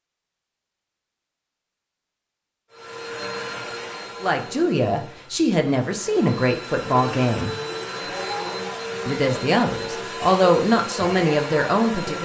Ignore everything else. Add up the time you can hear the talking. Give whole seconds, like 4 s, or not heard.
6 s.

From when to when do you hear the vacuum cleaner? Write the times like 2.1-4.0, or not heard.
2.7-12.1.